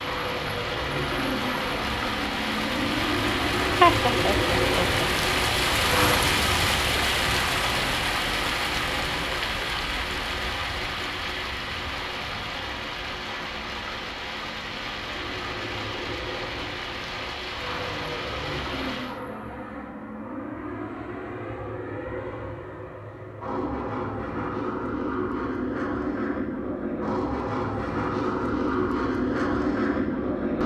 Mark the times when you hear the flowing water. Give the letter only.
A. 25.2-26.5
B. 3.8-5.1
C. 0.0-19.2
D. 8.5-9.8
C.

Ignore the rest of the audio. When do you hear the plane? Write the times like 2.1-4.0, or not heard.
0.0-6.3, 14.9-30.6.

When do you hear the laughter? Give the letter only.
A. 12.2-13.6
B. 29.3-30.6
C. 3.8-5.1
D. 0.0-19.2
C.